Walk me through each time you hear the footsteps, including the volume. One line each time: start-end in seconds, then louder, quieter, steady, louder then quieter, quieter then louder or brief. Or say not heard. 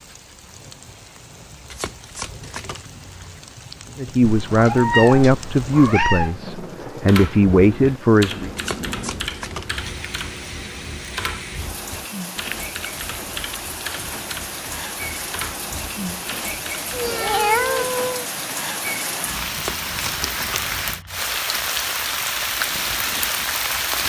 not heard.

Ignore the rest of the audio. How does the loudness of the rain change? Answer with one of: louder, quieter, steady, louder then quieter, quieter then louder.
louder.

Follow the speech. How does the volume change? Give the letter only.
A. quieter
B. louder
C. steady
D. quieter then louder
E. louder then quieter
D.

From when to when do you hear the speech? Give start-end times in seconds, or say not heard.
4.0-8.5.